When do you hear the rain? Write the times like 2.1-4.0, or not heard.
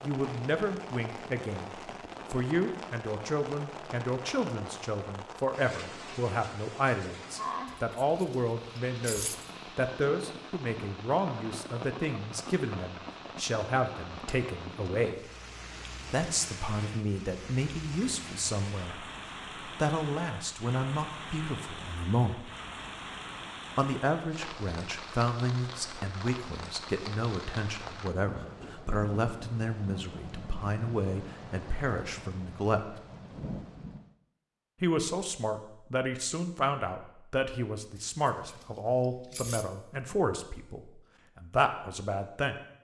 0.0-34.1.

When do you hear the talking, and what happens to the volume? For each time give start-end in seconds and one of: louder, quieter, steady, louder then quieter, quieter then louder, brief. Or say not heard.
0.0-15.3 steady
16.1-19.1 brief
19.6-22.5 brief
23.8-33.0 steady
34.8-42.5 steady.